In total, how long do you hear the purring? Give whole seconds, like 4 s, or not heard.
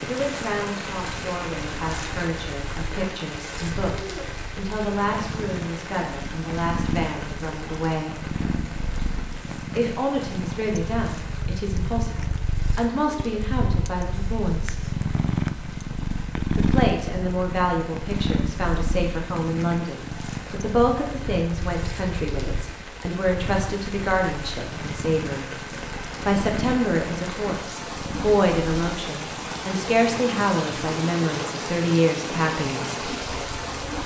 34 s.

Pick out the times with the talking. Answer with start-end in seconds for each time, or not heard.
0.1-8.2, 9.8-14.9, 16.6-25.6, 26.2-33.0.